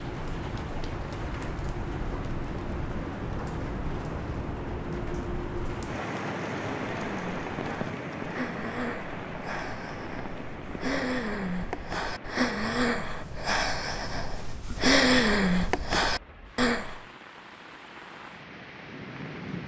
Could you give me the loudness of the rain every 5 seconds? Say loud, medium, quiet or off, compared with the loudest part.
loud, loud, medium, medium.